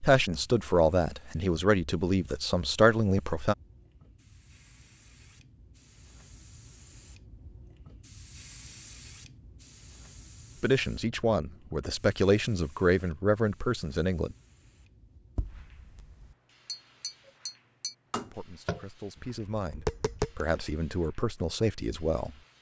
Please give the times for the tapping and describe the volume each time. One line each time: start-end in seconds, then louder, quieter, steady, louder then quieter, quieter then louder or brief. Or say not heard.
15.3-20.6 louder.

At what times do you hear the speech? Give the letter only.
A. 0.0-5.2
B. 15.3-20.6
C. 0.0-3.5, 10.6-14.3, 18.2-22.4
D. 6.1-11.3
C.